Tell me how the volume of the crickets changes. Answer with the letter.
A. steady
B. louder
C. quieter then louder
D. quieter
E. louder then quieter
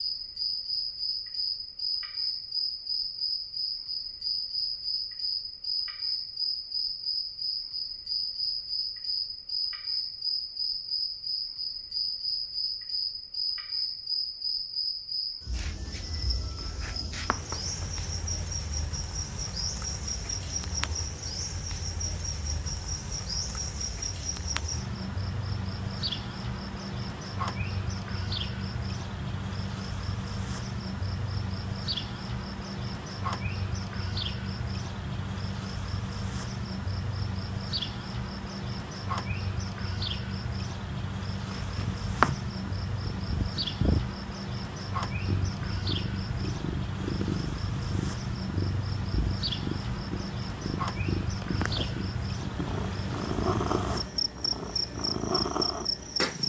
A.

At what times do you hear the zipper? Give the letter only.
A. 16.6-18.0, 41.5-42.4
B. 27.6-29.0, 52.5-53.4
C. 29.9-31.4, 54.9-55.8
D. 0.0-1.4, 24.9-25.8
A.